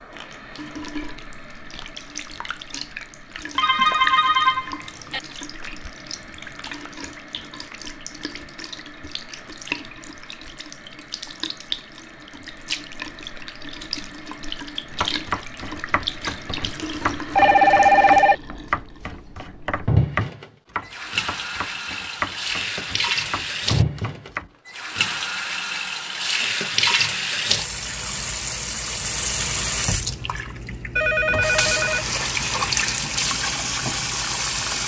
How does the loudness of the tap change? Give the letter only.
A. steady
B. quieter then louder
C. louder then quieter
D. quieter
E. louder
E.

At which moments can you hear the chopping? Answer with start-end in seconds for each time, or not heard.
14.9-24.5.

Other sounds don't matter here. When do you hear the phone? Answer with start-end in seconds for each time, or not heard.
3.5-5.2, 17.4-18.4, 30.9-32.0.